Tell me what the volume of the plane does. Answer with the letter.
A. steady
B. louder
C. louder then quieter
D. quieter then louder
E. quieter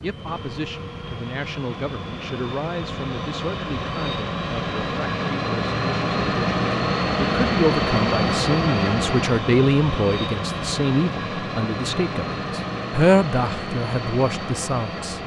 C.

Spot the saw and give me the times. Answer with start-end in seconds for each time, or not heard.
not heard.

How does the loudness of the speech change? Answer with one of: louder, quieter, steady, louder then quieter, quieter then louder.
louder.